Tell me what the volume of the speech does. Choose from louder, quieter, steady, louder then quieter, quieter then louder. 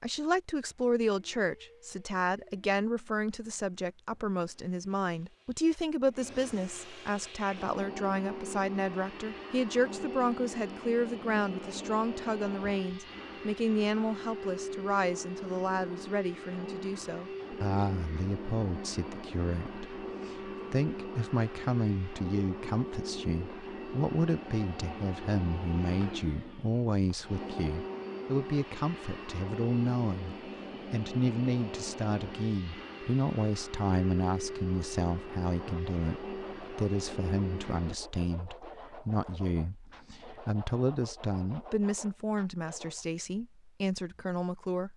steady.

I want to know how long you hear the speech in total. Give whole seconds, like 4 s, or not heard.
45 s.